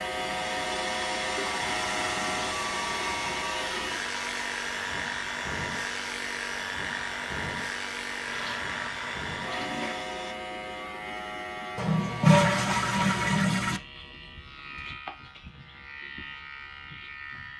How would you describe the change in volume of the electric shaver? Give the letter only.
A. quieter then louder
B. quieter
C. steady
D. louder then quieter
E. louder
B.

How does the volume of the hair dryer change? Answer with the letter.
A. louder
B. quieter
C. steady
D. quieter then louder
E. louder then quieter
B.